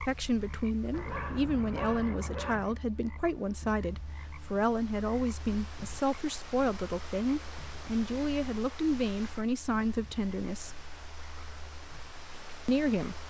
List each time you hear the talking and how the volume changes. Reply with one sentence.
You can hear the talking from 0.0 to 10.8 s, at a steady volume; and briefly from 12.7 to 13.2 s.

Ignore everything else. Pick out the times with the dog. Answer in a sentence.
You can hear the dog from 0.9 to 2.8 s.